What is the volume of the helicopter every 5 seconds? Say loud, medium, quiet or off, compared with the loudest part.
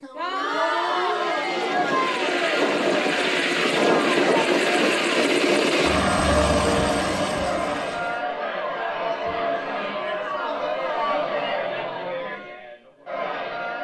loud, loud, off.